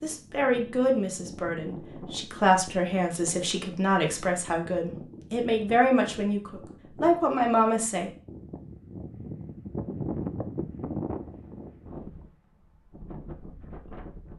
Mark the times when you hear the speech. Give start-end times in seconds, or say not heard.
0.0-8.1.